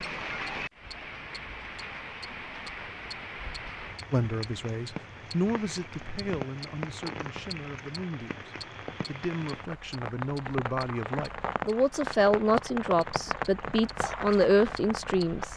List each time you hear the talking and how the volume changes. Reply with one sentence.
The talking can be heard from 4.1 to 15.5 s, getting quieter then louder.